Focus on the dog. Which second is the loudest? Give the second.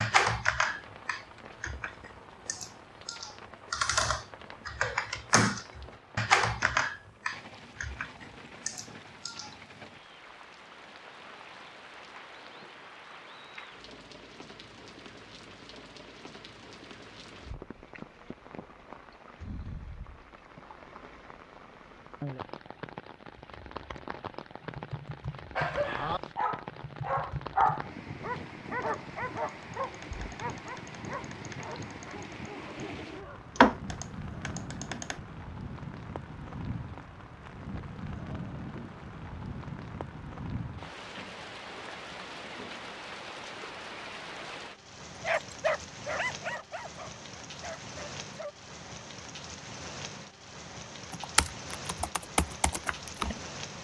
28 s.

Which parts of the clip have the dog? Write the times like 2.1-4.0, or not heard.
25.6-33.5, 45.2-48.5.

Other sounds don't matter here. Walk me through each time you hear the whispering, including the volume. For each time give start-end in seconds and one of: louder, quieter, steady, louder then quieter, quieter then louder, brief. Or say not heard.
not heard.